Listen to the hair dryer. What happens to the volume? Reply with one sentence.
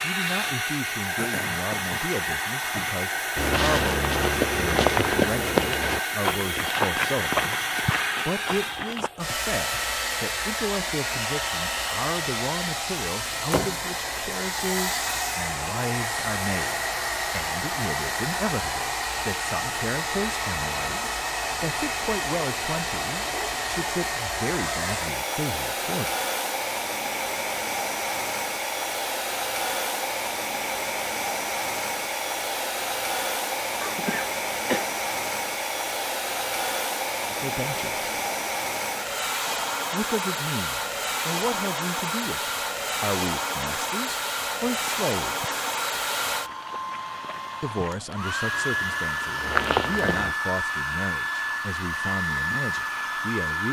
The loudness of the hair dryer stays about the same.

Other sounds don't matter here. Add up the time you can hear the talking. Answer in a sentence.
You can hear the talking for 38 seconds altogether.